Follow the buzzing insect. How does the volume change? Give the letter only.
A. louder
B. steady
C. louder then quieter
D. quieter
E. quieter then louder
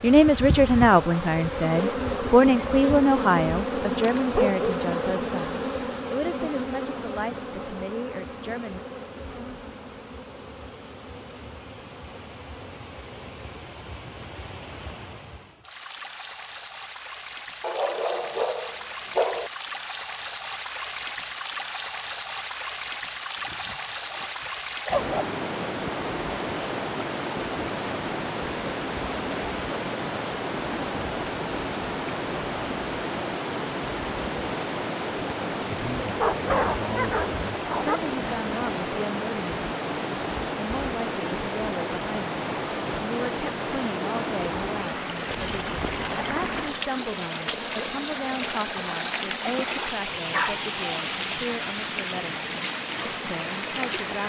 D.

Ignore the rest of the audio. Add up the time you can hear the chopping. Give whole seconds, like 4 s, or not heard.
not heard.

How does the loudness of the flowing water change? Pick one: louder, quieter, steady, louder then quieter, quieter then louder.
louder.